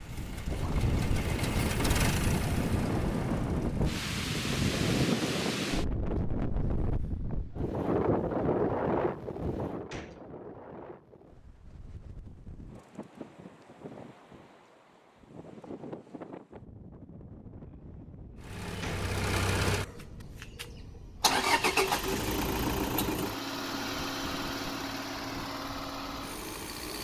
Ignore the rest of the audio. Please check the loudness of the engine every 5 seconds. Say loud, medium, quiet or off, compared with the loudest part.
medium, off, off, loud, loud, medium.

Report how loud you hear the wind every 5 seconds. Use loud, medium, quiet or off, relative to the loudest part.
loud, loud, quiet, quiet, quiet, quiet.